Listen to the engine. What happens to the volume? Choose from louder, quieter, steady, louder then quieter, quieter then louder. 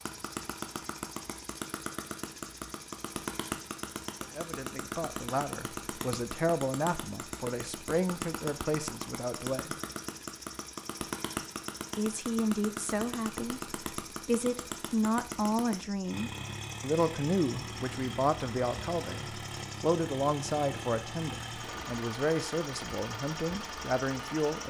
steady.